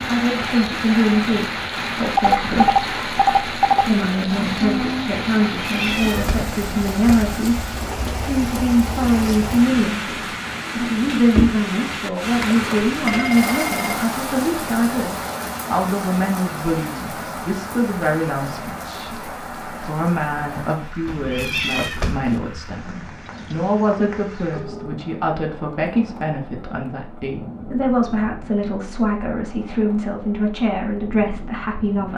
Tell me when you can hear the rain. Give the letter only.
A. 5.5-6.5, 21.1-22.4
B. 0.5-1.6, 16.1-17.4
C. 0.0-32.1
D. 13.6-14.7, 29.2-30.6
C.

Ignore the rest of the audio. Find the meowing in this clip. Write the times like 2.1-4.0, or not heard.
5.5-6.5, 21.1-22.4.